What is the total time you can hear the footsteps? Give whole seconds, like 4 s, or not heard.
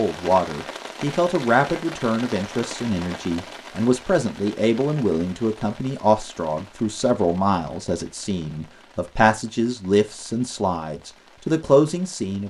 not heard.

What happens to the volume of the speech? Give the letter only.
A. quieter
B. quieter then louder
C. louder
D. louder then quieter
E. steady
E.